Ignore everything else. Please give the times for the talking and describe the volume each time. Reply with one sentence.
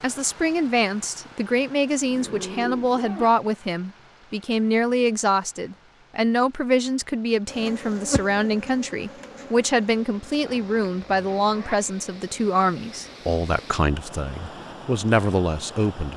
You can hear the talking from 0.0 to 16.1 s, at a steady volume.